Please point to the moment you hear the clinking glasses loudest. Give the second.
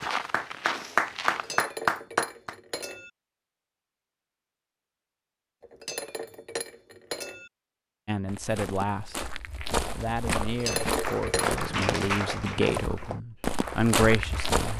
11 s.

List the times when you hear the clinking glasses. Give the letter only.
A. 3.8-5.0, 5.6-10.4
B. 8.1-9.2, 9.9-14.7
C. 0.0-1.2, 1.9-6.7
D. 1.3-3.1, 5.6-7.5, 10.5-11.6
D.